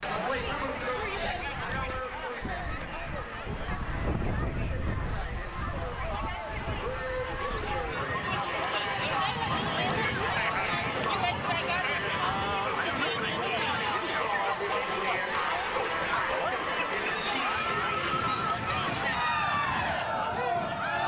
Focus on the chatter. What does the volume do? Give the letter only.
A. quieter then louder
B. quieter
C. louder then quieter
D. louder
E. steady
D.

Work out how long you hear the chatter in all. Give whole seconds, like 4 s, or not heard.
21 s.